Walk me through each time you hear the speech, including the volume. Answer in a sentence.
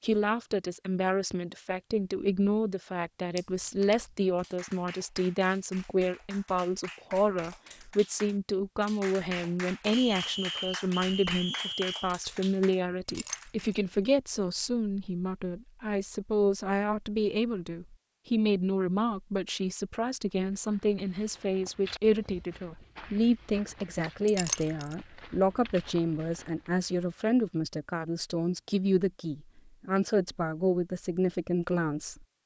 You can hear the speech from 0.0 to 32.2 s, at a steady volume.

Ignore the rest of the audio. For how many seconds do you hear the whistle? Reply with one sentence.
The whistle can be heard for 2 seconds in total.